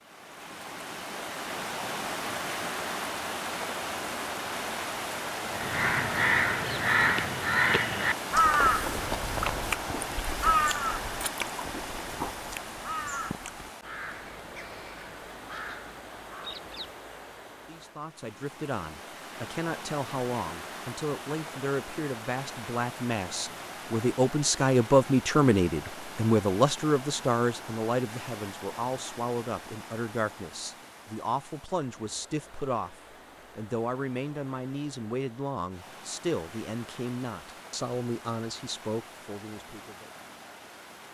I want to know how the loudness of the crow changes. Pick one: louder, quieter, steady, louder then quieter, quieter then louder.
quieter.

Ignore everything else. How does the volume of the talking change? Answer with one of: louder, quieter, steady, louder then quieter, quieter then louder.
louder then quieter.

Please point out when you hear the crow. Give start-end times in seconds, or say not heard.
5.5-16.9.